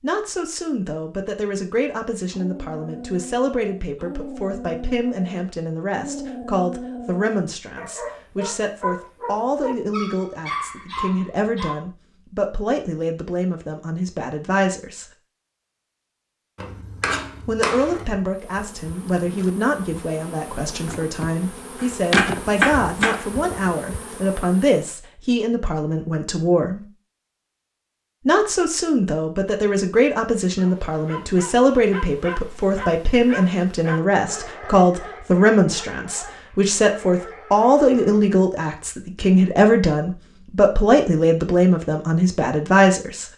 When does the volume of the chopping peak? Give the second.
23 s.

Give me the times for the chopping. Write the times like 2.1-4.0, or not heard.
16.6-18.2, 21.8-23.2.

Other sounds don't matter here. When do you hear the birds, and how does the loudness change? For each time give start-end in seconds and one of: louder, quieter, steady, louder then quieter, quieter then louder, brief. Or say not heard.
not heard.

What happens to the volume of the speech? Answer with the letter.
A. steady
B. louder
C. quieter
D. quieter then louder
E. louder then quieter
B.